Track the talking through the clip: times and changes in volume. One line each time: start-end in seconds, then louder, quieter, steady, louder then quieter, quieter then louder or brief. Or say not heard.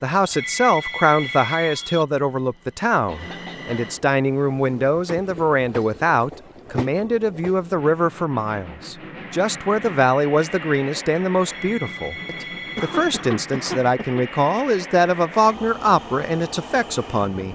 0.0-17.4 steady.